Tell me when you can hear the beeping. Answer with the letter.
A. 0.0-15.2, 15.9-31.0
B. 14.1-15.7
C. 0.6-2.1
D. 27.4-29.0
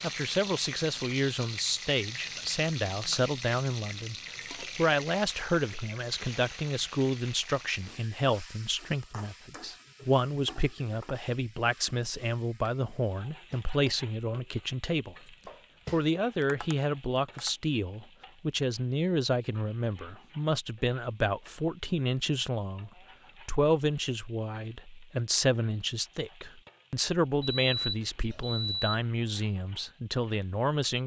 D.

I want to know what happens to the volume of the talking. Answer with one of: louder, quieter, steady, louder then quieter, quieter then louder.
steady.